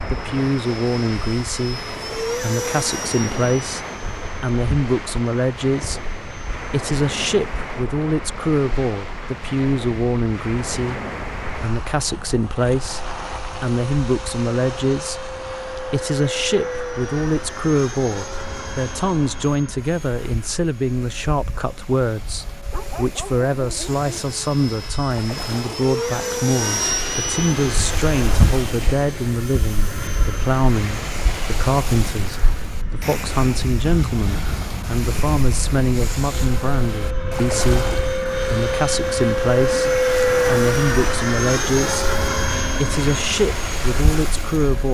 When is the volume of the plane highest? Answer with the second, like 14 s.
40 s.